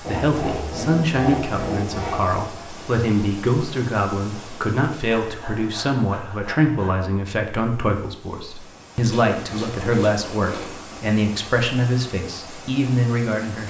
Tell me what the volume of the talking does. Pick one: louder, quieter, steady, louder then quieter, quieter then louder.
steady.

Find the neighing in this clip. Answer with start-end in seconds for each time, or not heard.
not heard.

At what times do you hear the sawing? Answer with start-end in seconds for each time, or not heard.
0.0-2.4, 5.1-7.1, 9.1-10.8.